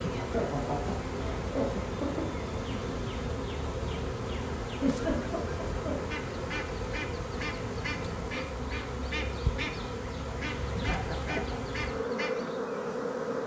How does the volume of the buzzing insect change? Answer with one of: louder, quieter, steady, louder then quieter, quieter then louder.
steady.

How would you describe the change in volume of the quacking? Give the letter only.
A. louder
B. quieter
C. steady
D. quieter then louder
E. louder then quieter
C.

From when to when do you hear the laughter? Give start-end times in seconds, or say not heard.
0.0-2.3, 4.7-6.2, 10.8-11.6.